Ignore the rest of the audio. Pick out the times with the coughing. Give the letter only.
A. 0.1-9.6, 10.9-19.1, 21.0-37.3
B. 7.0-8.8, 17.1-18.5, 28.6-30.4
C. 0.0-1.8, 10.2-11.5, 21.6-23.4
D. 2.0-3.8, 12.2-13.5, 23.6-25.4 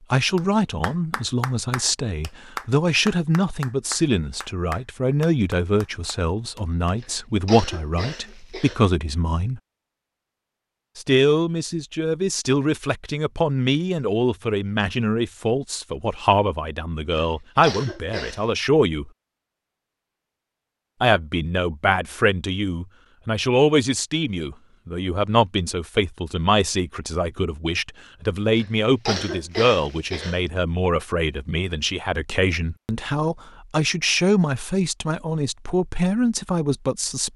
B.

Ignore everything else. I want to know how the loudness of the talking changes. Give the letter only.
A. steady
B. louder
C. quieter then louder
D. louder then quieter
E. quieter
A.